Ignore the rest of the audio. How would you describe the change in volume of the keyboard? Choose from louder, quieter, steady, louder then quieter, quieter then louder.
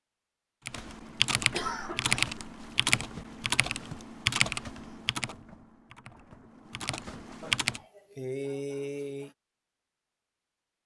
quieter.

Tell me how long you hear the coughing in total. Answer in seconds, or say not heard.
3 s.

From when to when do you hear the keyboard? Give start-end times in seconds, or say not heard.
0.7-7.8.